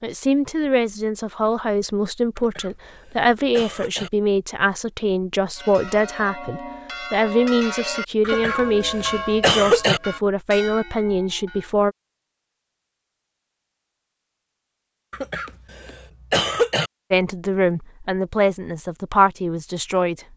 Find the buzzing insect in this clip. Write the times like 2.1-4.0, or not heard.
not heard.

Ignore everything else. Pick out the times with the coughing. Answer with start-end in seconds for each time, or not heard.
2.4-4.1, 8.2-10.0, 15.1-16.9.